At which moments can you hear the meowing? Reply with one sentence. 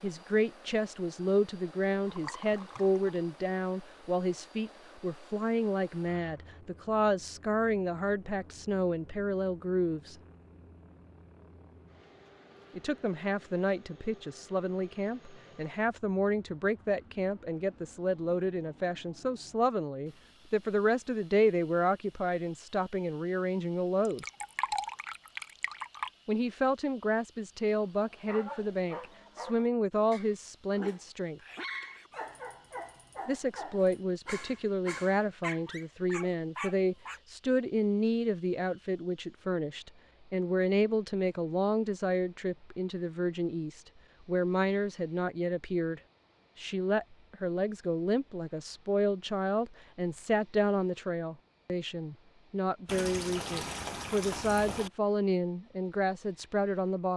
The meowing can't be heard in this clip.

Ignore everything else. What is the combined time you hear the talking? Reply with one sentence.
You can hear the talking for 51 seconds altogether.